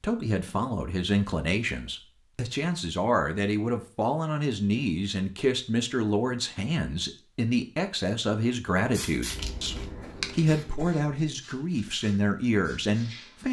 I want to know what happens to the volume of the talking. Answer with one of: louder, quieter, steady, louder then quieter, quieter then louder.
steady.